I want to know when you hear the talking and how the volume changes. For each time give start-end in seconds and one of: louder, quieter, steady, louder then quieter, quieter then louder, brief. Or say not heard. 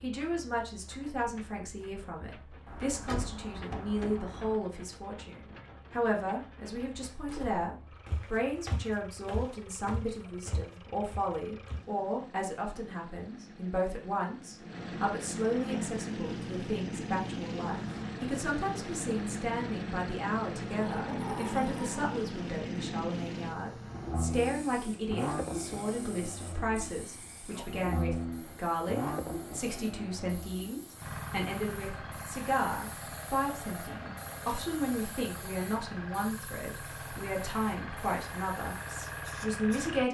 0.0-40.0 steady.